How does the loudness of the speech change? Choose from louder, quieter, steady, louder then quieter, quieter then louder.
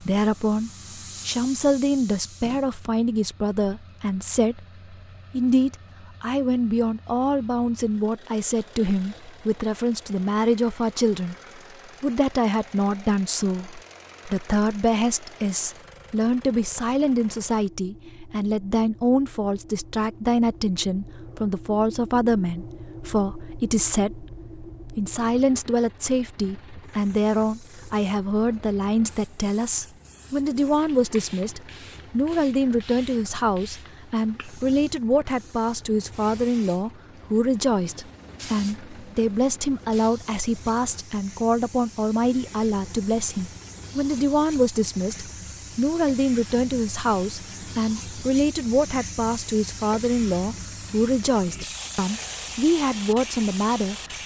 steady.